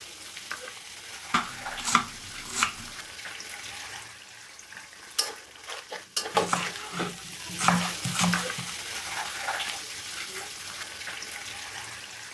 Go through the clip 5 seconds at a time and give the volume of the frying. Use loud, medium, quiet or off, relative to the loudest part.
medium, loud, medium.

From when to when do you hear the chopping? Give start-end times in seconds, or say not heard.
1.3-2.9, 6.3-8.8.